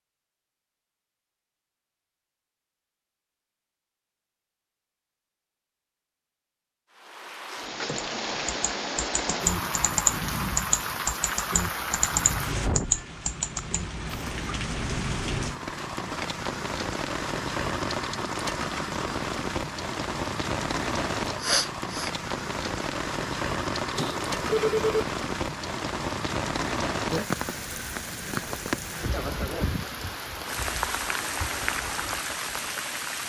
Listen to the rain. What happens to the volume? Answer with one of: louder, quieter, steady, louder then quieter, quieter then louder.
steady.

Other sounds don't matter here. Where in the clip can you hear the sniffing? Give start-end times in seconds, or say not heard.
21.4-22.1.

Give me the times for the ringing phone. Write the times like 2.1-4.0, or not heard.
23.9-25.1.